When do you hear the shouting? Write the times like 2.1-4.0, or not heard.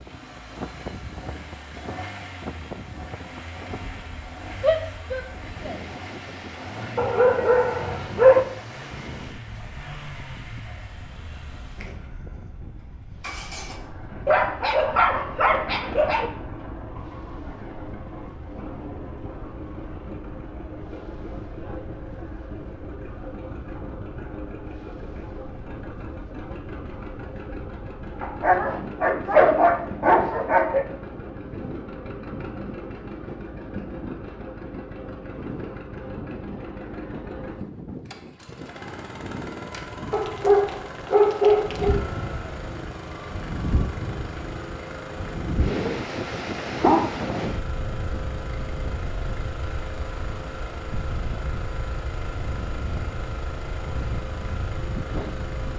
4.6-5.8.